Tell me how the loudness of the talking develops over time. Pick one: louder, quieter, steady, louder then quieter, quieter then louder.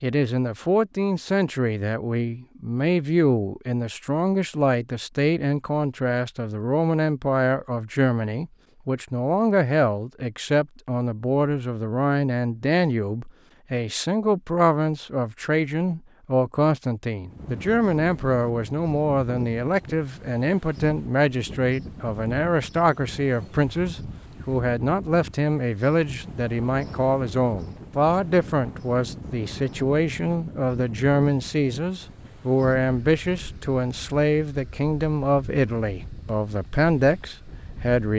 steady.